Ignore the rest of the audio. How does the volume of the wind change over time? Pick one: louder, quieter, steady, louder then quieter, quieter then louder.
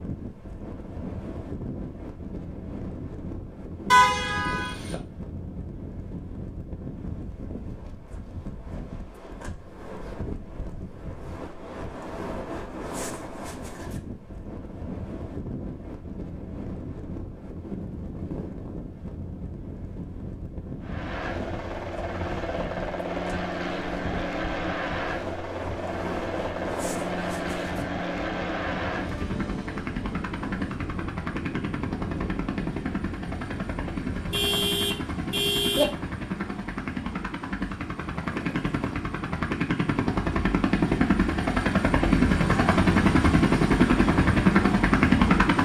steady.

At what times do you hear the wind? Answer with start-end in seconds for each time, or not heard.
0.0-34.8.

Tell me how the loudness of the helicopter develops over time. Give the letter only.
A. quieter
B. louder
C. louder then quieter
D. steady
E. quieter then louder
B.